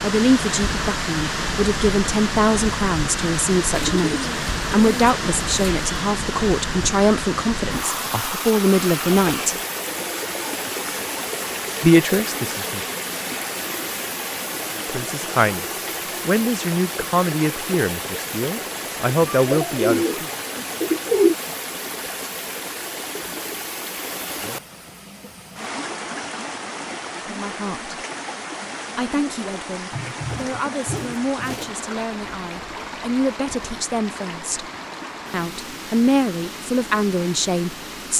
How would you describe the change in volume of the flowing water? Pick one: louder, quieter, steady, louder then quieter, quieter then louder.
quieter.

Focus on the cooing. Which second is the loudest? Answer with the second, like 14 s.
21 s.